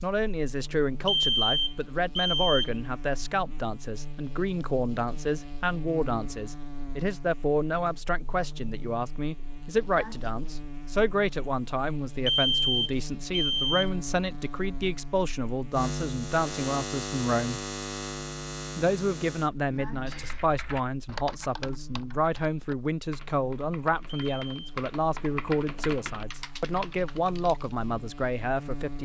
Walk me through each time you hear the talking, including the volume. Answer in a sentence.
The talking can be heard from 0.0 to 17.6 s, at a steady volume; and from 18.8 to 29.0 s, at a steady volume.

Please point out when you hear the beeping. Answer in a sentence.
You can hear the beeping from 1.1 to 2.7 s, from 12.2 to 13.9 s and from 24.2 to 24.8 s.